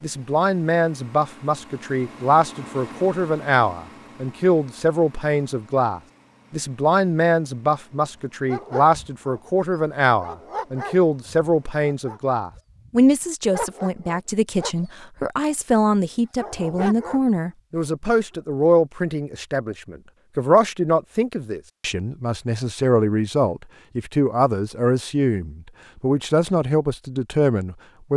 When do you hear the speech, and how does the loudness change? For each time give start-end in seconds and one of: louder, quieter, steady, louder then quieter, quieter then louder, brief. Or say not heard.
0.0-28.1 steady.